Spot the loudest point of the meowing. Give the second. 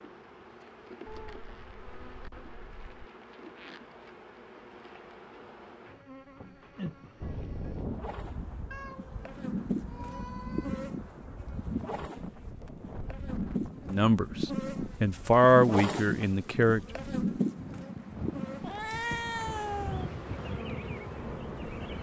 19 s.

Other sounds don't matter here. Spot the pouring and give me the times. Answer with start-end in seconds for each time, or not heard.
not heard.